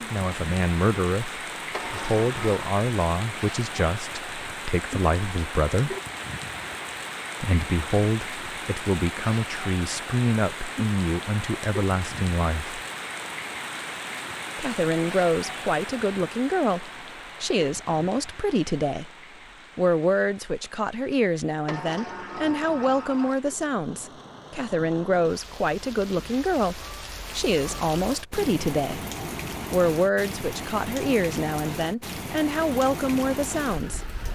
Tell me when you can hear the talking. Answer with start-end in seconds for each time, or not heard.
0.1-6.0, 7.4-12.8, 14.6-19.1, 19.8-29.0, 29.7-34.0.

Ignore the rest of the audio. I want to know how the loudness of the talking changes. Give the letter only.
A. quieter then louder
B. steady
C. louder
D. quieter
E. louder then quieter
B.